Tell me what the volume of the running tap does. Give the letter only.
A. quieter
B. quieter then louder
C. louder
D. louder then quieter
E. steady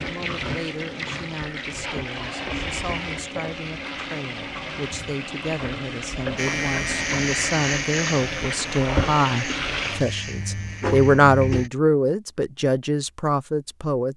E.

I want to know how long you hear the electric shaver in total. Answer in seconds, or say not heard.
5 s.